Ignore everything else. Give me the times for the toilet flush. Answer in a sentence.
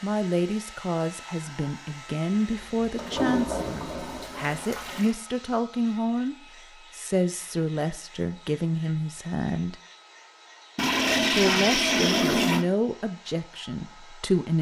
You can hear the toilet flush from 2.5 to 5.1 s and from 10.8 to 12.7 s.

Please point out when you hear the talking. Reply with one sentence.
The talking can be heard from 0.0 to 6.3 s, from 7.0 to 9.8 s and from 11.3 to 14.5 s.